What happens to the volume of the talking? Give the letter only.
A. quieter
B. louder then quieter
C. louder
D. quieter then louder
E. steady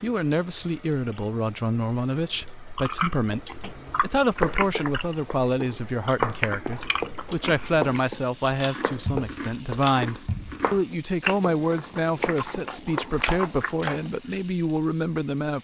E.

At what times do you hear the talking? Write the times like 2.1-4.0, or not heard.
0.0-15.5.